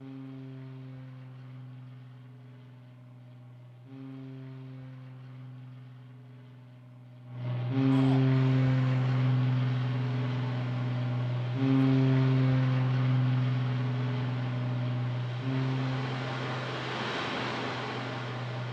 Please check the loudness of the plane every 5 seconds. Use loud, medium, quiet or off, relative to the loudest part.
quiet, loud, loud, medium.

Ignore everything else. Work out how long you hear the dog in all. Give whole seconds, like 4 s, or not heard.
not heard.